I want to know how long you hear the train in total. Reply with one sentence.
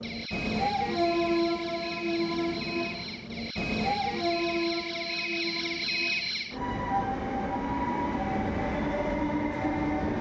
You can hear the train for 10 seconds altogether.